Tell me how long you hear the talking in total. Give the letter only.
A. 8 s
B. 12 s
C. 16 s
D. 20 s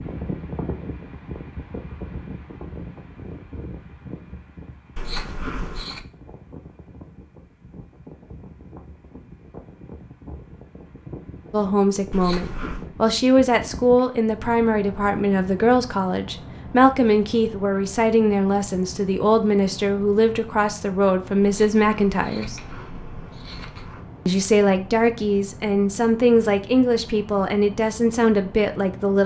C.